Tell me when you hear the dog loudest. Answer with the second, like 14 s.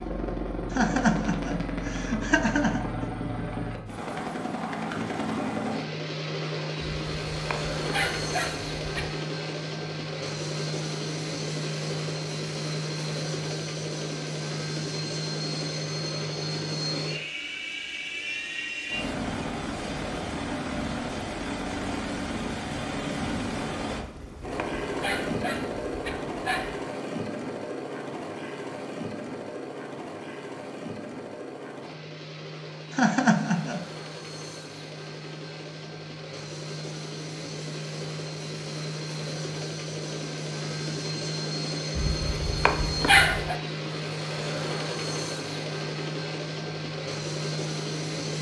43 s.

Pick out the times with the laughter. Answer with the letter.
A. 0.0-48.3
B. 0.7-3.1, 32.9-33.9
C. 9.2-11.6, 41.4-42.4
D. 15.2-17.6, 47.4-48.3
B.